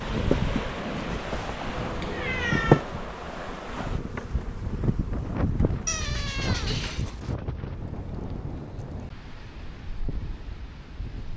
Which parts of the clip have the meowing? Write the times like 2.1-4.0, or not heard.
1.7-2.9, 5.8-7.3.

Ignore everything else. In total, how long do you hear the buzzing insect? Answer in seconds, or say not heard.
7 s.